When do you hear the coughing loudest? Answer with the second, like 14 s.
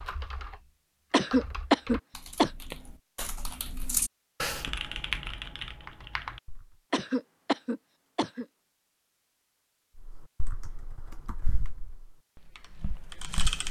2 s.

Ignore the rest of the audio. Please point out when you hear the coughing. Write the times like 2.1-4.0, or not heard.
1.1-2.5, 6.9-8.4.